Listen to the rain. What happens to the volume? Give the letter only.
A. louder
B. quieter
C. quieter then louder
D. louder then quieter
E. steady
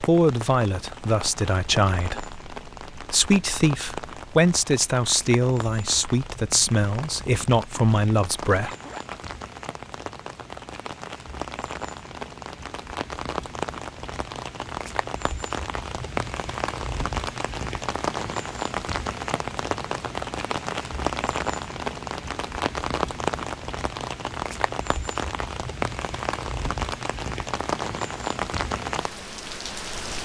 A.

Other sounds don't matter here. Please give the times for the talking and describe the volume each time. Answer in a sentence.
The talking can be heard from 0.0 to 8.7 s, at a steady volume.